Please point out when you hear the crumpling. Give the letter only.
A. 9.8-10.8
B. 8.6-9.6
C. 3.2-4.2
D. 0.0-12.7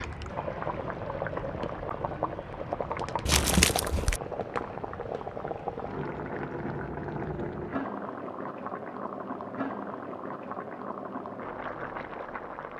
C.